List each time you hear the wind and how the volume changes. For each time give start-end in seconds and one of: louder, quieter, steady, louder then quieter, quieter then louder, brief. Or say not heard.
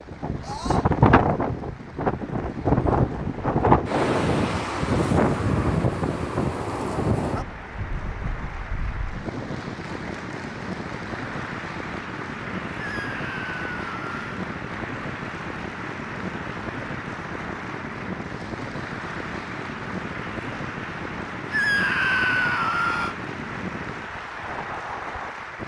0.0-25.6 quieter.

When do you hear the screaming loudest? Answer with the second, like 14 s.
22 s.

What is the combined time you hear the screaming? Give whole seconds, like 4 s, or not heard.
4 s.